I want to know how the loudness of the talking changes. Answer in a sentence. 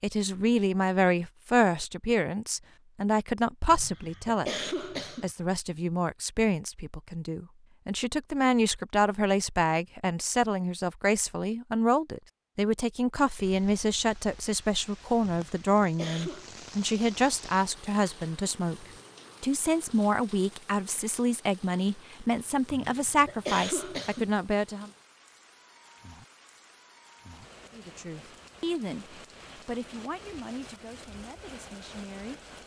The volume of the talking goes down.